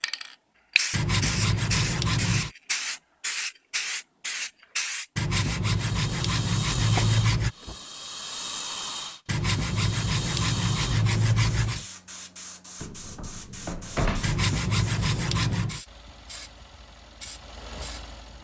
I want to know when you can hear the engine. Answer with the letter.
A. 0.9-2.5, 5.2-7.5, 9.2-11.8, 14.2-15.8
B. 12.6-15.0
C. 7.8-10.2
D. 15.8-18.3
D.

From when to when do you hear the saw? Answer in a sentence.
The saw can be heard from 0.9 to 2.5 s, from 5.2 to 7.5 s, from 9.2 to 11.8 s and from 14.2 to 15.8 s.